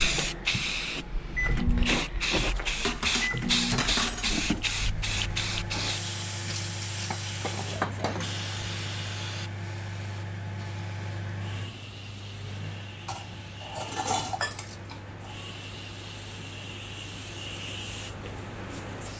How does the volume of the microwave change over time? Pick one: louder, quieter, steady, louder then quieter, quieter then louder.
quieter.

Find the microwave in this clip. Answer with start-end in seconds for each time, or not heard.
0.0-19.1.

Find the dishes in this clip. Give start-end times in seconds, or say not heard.
2.8-4.7, 7.1-8.2, 13.1-15.3.